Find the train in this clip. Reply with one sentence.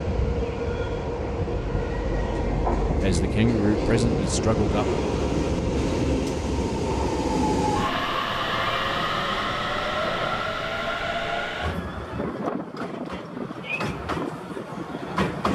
You can hear the train from 0.0 to 15.5 s.